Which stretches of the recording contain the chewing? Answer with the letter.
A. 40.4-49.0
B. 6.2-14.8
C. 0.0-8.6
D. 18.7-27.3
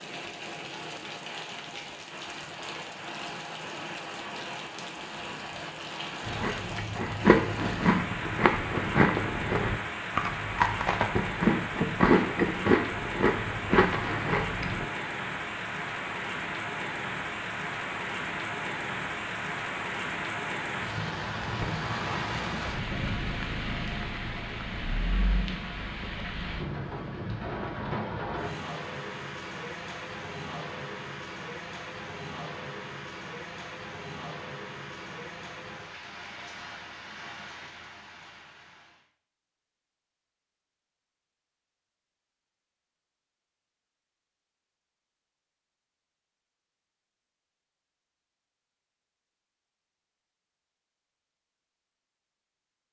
B.